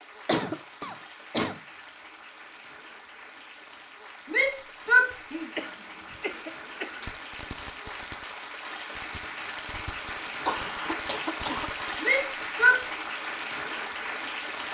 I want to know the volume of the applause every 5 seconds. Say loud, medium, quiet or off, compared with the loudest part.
quiet, medium, loud.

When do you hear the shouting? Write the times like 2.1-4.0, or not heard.
4.3-5.5, 12.0-12.8.